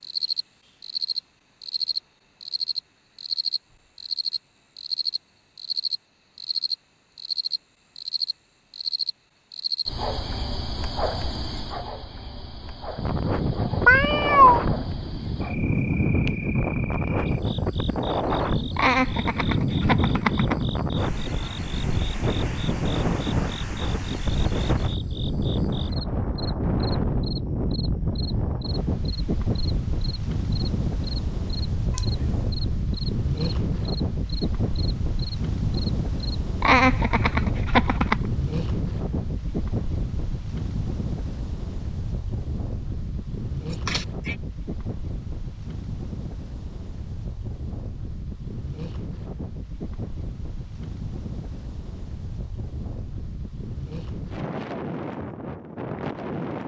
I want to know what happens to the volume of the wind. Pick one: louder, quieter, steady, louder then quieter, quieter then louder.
quieter.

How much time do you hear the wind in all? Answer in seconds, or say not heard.
44 s.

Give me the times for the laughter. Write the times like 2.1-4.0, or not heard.
18.8-20.6, 36.6-38.1.